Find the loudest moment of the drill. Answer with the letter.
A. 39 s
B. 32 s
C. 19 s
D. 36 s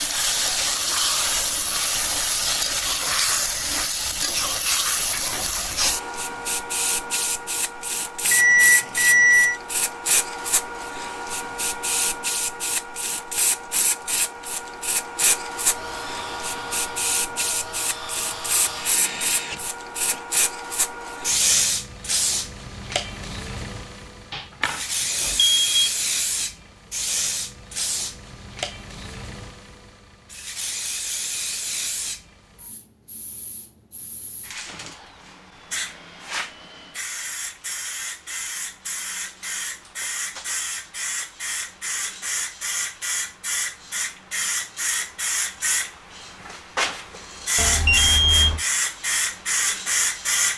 C.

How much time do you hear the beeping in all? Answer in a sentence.
The beeping can be heard for 4 seconds in total.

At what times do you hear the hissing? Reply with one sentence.
The hissing can be heard from 0.0 to 50.5 s.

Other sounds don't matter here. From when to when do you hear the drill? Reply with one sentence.
You can hear the drill from 15.6 to 20.2 s and from 34.5 to 37.0 s.